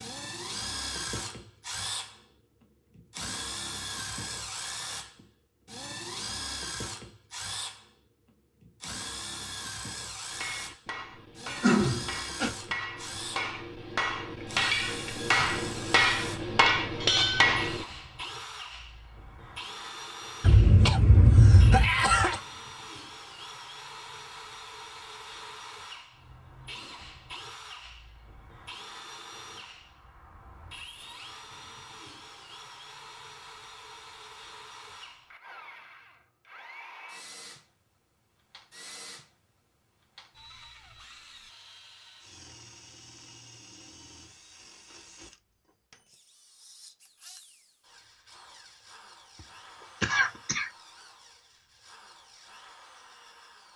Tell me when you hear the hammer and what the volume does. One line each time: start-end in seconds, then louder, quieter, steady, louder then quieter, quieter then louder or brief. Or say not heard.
10.3-17.9 louder.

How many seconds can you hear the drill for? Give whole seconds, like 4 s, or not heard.
54 s.